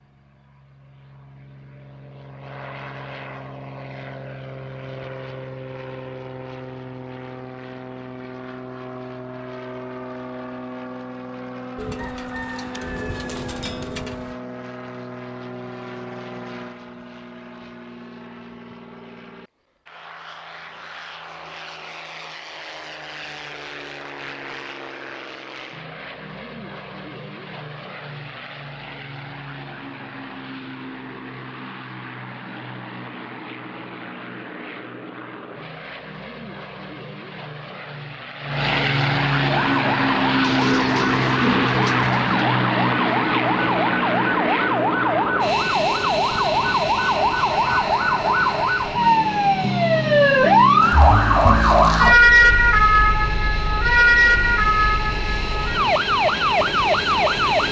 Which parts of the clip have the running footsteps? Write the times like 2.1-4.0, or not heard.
not heard.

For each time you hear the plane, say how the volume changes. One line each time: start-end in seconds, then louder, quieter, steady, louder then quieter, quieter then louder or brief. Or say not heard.
0.0-57.6 louder then quieter.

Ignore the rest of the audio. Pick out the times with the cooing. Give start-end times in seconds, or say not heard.
11.8-14.3, 40.4-42.3.